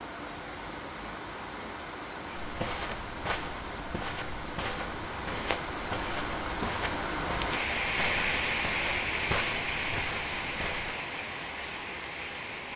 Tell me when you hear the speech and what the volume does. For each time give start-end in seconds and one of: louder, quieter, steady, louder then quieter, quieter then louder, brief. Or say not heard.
not heard.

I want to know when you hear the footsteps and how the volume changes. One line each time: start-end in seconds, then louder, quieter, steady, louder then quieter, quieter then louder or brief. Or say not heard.
2.4-10.9 steady.